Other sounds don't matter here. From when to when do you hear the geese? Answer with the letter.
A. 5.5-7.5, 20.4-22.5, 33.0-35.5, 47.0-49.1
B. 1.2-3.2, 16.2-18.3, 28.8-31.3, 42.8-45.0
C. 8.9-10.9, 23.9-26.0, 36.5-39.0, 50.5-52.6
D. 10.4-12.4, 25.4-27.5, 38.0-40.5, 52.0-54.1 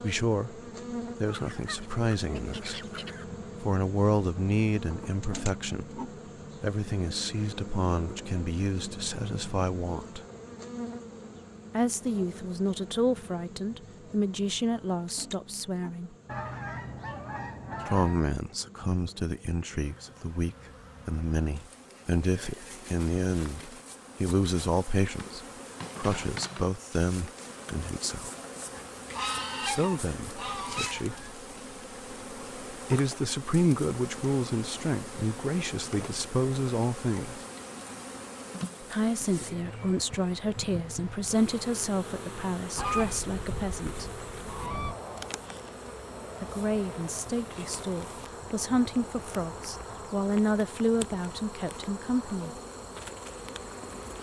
B.